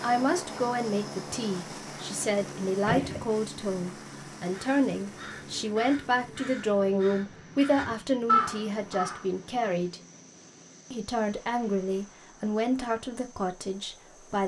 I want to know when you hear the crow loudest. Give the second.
8 s.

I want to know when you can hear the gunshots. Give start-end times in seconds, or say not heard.
2.9-3.3.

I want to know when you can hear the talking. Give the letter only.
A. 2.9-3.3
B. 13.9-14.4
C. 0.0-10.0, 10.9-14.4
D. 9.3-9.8
C.